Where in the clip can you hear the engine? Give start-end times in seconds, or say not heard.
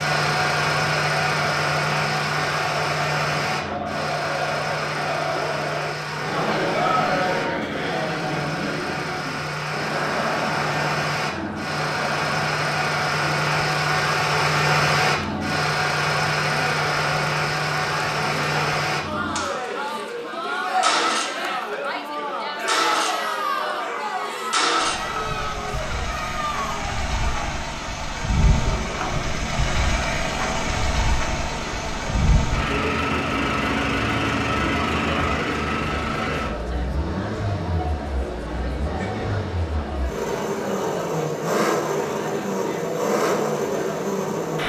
0.0-44.6.